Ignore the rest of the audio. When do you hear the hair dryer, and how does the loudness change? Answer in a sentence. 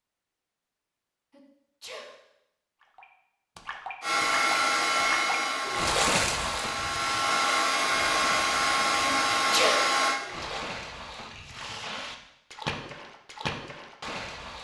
You can hear the hair dryer from 4.0 to 10.2 s, getting quieter then louder.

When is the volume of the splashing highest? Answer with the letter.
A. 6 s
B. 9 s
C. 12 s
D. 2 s
A.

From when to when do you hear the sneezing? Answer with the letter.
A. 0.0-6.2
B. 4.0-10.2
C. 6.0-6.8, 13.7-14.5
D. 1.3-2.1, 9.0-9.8
D.